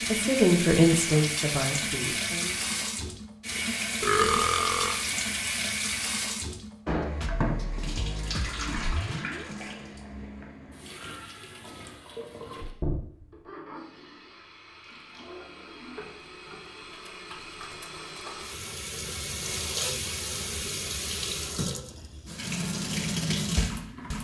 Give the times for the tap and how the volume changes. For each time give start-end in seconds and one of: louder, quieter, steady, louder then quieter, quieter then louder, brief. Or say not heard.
0.0-24.1 quieter then louder.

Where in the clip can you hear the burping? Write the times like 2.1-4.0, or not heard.
4.0-5.0.